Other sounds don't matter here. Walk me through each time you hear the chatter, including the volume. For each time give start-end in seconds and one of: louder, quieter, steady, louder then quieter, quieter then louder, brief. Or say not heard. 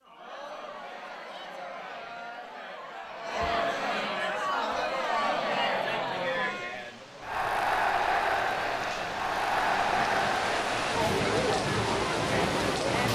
0.0-13.1 louder.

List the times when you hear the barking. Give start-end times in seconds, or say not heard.
not heard.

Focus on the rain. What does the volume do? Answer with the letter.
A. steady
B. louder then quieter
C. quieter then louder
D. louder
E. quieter
D.